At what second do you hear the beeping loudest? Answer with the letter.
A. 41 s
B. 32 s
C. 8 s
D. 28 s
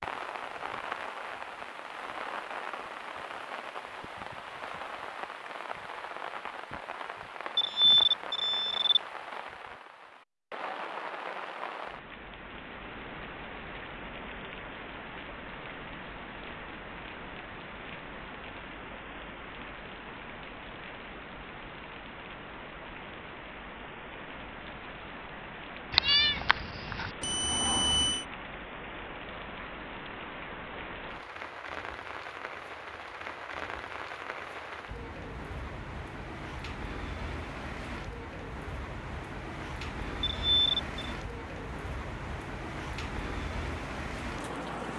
C.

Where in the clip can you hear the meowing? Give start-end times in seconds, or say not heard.
25.9-27.1.